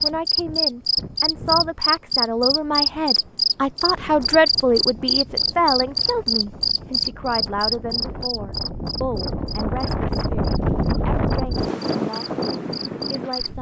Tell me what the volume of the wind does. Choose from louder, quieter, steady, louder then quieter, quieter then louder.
louder.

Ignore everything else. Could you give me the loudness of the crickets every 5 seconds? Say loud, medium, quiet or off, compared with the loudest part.
loud, loud, quiet.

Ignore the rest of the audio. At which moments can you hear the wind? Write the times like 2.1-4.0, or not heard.
0.0-13.5.